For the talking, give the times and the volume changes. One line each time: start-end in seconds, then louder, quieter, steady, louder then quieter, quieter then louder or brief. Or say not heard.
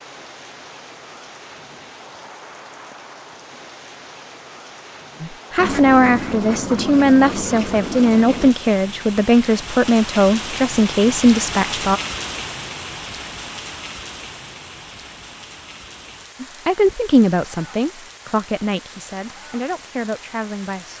5.2-12.0 steady
16.4-20.9 quieter.